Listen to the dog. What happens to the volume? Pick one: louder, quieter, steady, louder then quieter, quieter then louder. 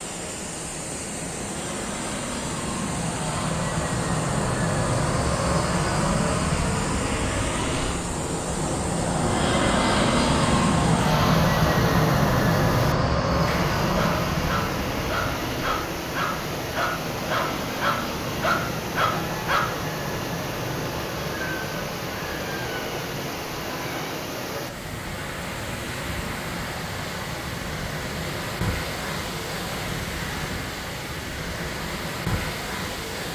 louder.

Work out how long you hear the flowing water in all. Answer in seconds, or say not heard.
33 s.